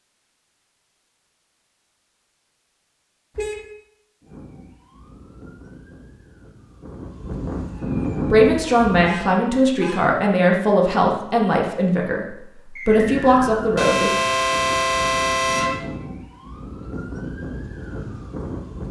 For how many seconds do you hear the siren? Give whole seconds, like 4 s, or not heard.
11 s.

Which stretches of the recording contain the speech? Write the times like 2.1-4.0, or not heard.
8.3-14.1.